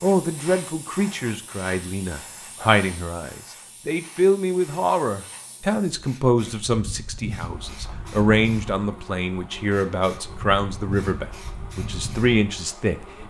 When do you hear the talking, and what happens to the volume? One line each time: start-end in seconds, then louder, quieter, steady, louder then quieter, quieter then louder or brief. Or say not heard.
0.0-13.2 steady.